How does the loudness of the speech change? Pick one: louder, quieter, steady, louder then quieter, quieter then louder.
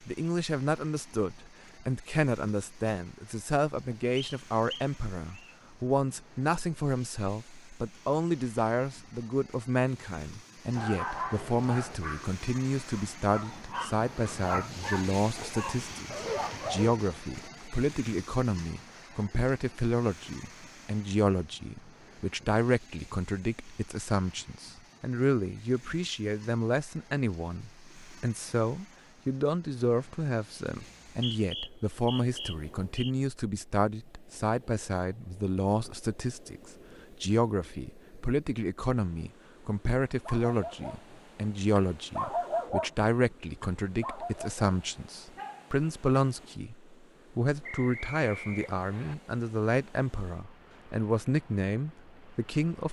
steady.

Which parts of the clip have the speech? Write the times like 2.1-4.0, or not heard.
0.1-52.8.